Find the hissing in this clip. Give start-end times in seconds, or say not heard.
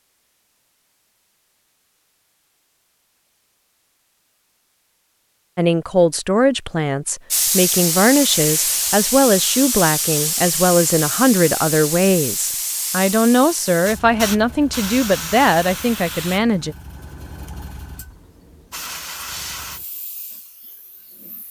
7.3-21.4.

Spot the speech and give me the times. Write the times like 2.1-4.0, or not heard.
5.5-16.8.